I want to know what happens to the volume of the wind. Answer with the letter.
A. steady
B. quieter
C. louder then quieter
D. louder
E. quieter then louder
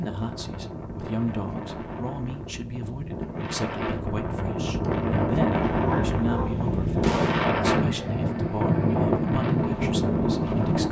D.